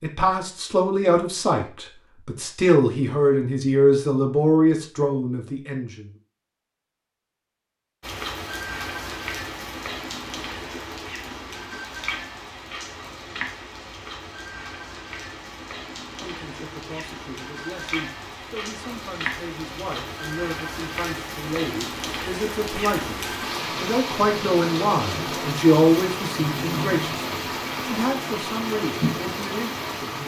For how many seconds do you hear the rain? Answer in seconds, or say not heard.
22 s.